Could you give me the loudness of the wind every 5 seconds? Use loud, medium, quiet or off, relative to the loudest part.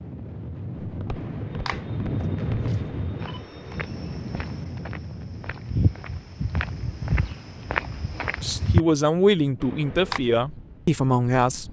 loud, medium, quiet.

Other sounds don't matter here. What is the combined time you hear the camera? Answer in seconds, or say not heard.
3 s.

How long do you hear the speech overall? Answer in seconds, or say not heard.
3 s.